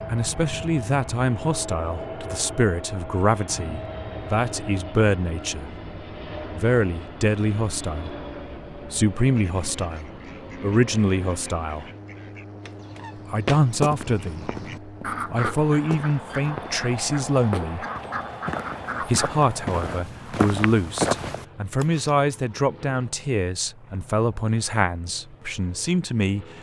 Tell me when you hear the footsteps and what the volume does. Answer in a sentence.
The footsteps can be heard from 12.7 to 22.1 s, getting quieter then louder.